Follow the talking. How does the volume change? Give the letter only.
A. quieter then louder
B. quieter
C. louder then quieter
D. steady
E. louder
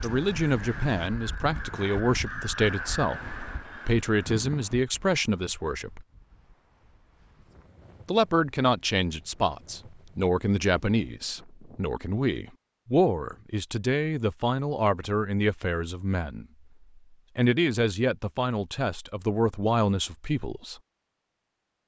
D.